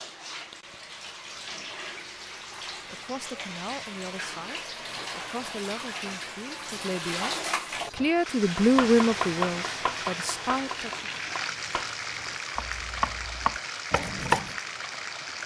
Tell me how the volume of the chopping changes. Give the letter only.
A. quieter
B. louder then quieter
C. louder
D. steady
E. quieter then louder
E.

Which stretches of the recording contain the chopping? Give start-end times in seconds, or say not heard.
8.6-14.6.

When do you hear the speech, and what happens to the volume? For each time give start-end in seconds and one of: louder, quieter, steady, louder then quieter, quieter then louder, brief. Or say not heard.
2.9-11.1 louder then quieter.